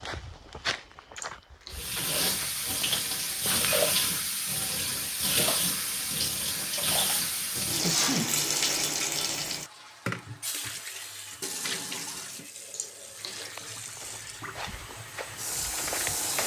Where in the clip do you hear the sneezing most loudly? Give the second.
8 s.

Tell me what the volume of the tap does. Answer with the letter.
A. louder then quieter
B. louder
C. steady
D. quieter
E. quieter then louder
D.